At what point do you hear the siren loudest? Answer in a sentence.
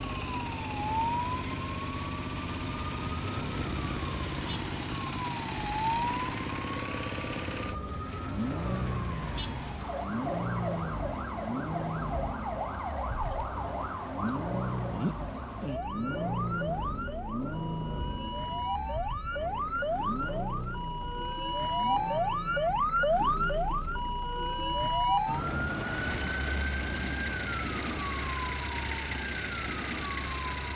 The loudest moment of the siren is at 23 seconds.